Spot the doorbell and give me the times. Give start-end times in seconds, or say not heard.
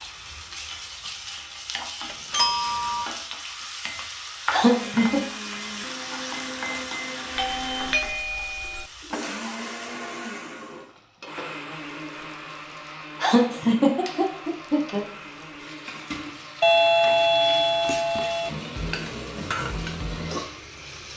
2.0-3.1, 7.3-8.8, 16.6-18.5.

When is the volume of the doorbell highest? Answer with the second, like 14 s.
17 s.